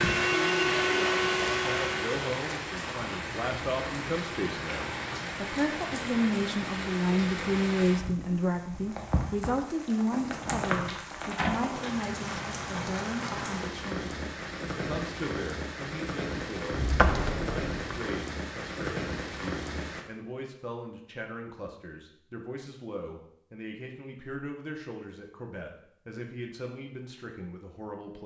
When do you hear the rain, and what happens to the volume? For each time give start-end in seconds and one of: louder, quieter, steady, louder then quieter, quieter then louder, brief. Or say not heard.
0.0-20.1 steady.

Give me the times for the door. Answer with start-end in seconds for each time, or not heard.
10.4-11.7, 16.7-18.0.